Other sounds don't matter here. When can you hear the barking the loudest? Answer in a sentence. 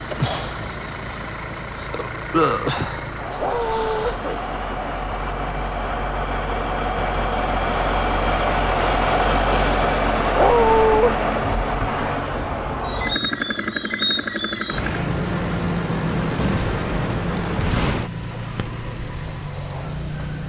The loudest moment of the barking is at 11 seconds.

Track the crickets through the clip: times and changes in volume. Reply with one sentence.
You can hear the crickets from 0.0 to 20.4 s, getting quieter then louder.